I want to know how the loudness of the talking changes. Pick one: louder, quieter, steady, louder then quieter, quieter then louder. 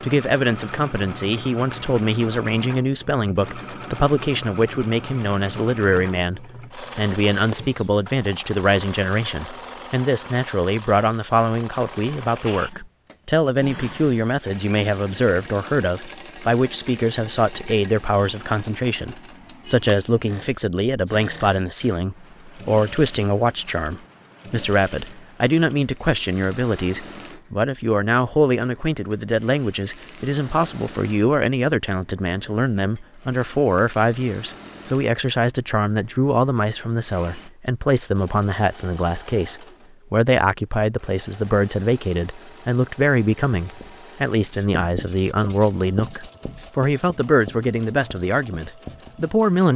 steady.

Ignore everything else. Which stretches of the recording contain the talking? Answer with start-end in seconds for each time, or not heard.
0.0-49.7.